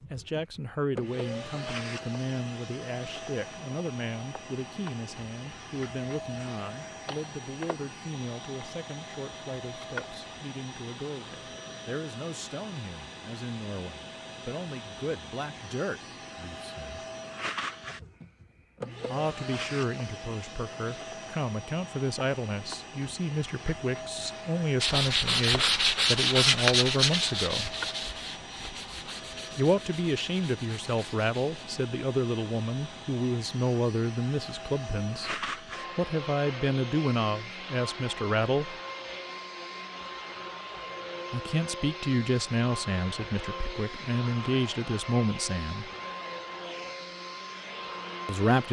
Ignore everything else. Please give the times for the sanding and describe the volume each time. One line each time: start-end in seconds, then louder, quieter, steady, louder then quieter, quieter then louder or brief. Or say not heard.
24.8-31.6 quieter.